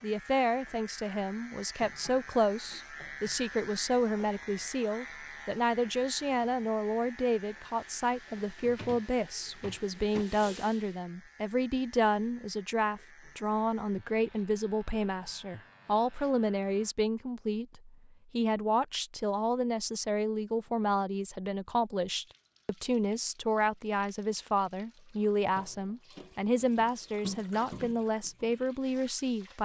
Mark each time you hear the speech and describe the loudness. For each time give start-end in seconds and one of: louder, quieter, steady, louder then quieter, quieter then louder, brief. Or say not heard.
0.0-29.6 steady.